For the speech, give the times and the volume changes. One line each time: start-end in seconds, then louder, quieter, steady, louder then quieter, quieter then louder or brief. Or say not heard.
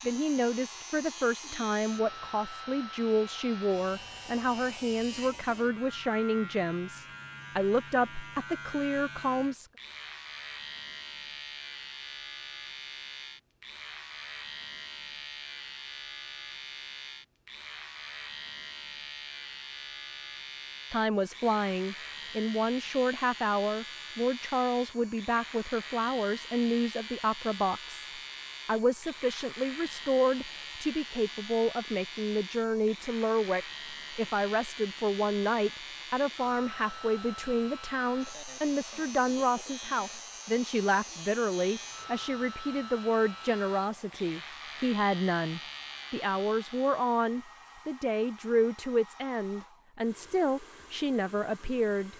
0.0-9.7 steady
20.9-52.1 steady.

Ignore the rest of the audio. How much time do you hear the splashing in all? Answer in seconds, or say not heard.
not heard.